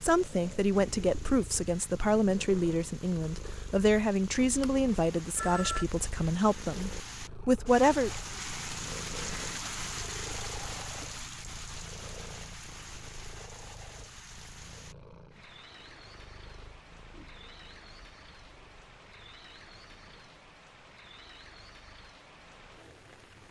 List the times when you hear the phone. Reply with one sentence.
You can hear the phone from 4.6 to 5.8 s.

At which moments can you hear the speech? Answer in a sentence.
You can hear the speech from 0.0 to 8.1 s.